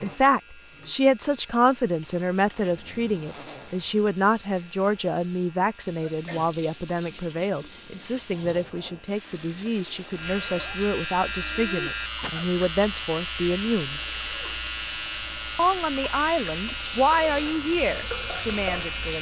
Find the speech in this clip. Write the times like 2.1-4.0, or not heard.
0.0-14.0, 15.6-19.1.